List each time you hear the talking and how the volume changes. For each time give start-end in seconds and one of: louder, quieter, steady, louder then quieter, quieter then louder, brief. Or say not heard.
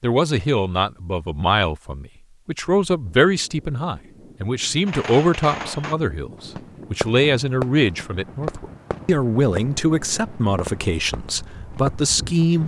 0.0-12.6 steady.